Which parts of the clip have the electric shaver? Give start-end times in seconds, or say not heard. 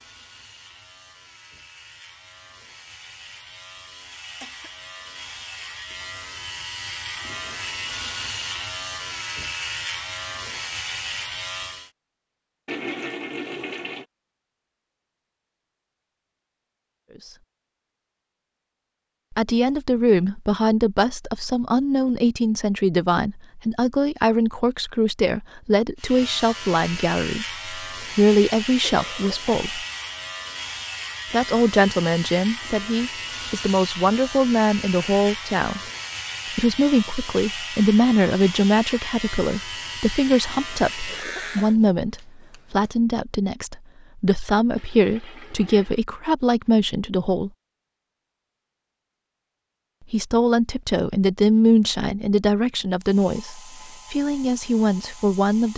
0.0-11.9, 25.9-41.8.